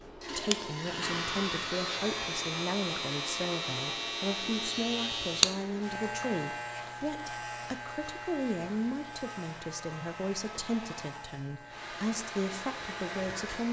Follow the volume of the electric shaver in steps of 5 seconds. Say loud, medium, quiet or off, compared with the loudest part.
loud, loud, quiet.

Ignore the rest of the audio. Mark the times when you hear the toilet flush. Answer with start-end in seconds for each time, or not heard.
0.2-1.4.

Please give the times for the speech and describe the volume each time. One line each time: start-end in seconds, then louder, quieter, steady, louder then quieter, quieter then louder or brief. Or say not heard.
0.1-13.6 steady.